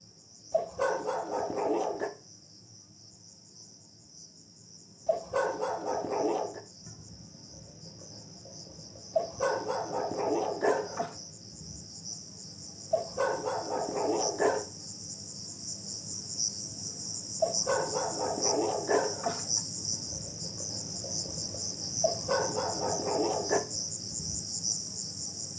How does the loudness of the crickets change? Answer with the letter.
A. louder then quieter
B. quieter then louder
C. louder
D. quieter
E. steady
C.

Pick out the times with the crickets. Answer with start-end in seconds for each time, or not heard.
0.0-25.5.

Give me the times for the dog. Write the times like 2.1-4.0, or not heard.
0.5-2.1, 5.0-6.6, 9.2-11.2, 12.9-14.7, 17.4-19.6, 22.0-23.6.